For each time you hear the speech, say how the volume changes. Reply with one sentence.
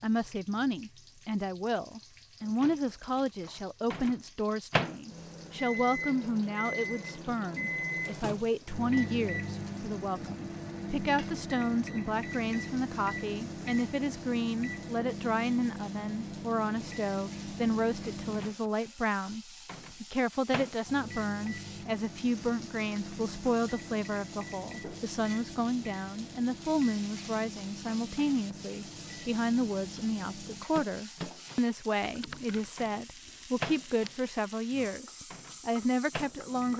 You can hear the speech from 0.0 to 36.7 s, at a steady volume.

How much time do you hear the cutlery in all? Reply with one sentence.
The cutlery can't be heard in this clip.